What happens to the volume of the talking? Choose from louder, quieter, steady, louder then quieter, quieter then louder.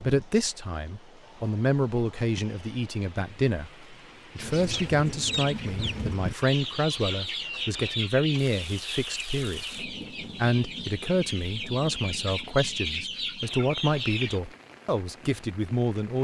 steady.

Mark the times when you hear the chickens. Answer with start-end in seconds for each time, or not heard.
4.3-14.4.